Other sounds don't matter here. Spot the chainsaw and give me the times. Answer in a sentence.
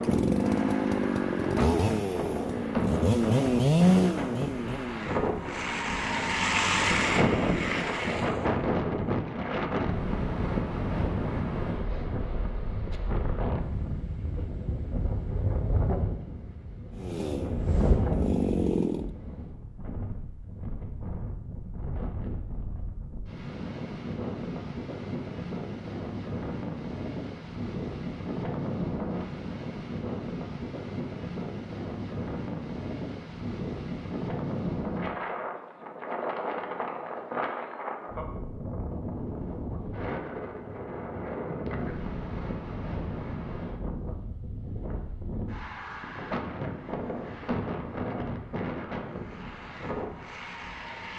The chainsaw can be heard from 0.0 to 8.0 s and from 16.9 to 19.1 s.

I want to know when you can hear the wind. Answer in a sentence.
You can hear the wind from 0.0 to 51.1 s.